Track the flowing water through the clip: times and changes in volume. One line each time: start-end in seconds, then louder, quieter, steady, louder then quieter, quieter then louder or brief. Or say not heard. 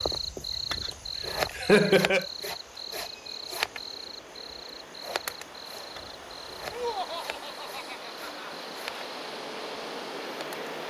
0.0-10.8 louder.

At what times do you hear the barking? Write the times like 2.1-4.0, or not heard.
not heard.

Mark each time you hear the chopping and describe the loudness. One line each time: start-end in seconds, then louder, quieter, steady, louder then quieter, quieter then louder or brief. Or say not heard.
not heard.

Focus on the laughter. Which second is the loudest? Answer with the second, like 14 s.
2 s.